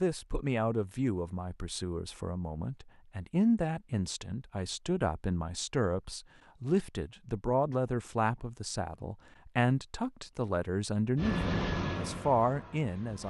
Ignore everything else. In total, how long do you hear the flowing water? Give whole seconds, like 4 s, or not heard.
not heard.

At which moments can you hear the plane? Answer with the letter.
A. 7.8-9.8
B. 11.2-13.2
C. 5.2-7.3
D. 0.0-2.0
B.